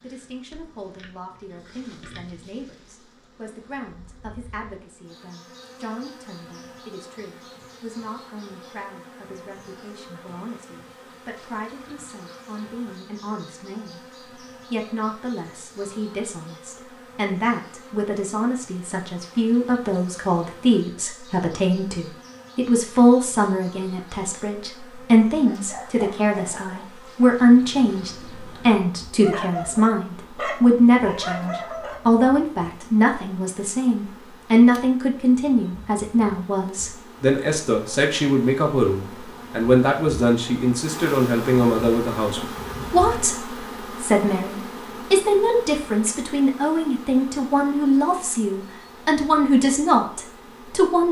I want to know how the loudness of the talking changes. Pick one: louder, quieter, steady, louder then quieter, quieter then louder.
louder.